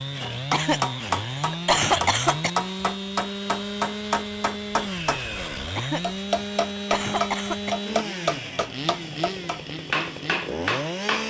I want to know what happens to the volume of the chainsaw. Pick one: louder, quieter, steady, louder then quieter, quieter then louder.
steady.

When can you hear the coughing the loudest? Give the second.
2 s.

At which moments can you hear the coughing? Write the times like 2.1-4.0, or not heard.
0.5-2.5, 5.8-7.8.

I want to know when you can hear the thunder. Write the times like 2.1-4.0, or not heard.
not heard.